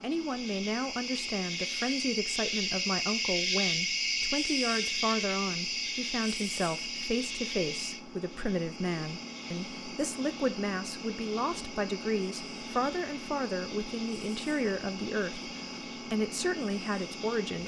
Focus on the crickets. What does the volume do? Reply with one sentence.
The volume of the crickets goes down.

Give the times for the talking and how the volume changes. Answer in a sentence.
The talking can be heard from 0.0 to 17.6 s, at a steady volume.